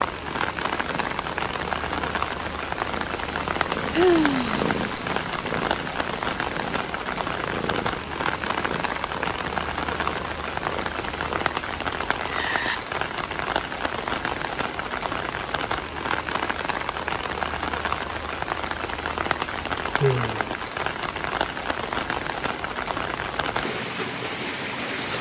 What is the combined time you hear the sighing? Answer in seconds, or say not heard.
2 s.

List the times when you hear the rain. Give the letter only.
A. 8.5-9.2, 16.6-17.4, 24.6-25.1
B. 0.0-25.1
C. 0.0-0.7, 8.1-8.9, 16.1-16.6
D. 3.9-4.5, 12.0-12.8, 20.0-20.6
B.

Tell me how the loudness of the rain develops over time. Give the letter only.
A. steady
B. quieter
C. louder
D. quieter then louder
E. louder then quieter
A.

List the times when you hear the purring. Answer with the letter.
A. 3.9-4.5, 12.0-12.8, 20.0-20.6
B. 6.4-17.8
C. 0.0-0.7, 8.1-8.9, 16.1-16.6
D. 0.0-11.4
D.